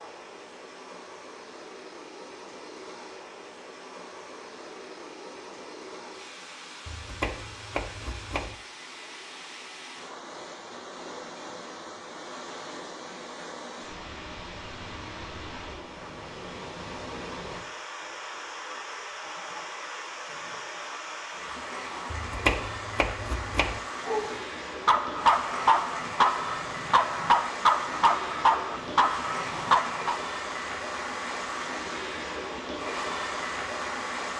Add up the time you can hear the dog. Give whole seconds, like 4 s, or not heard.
6 s.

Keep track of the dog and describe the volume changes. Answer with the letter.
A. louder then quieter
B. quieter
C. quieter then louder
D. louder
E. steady
E.